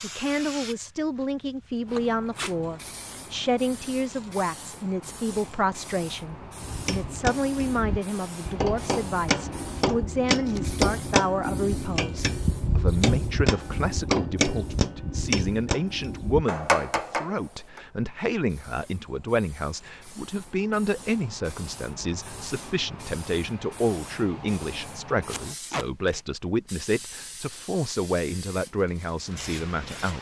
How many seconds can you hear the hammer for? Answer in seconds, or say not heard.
11 s.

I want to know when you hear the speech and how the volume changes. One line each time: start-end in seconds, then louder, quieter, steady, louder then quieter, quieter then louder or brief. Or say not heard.
0.0-30.1 steady.